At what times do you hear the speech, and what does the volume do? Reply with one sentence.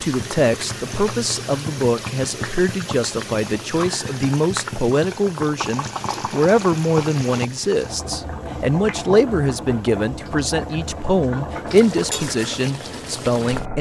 The speech can be heard from 0.0 to 13.7 s, at a steady volume.